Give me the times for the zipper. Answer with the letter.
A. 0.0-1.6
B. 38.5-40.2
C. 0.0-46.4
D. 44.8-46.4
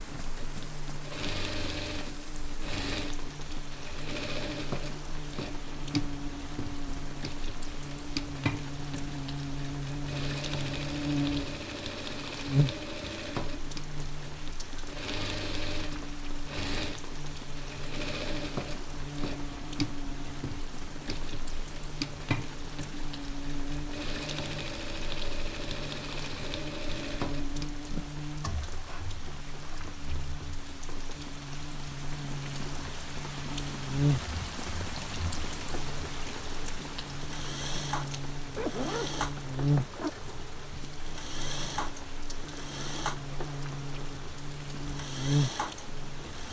B.